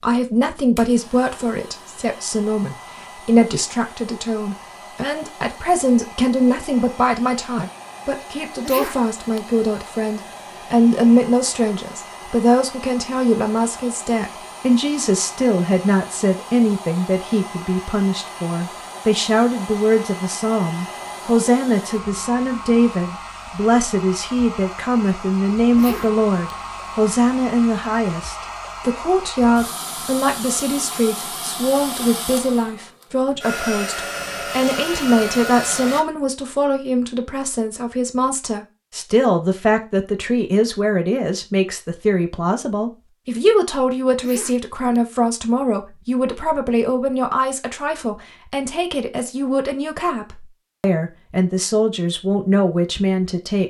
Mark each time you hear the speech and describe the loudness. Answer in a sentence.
The speech can be heard from 0.0 to 53.6 s, at a steady volume.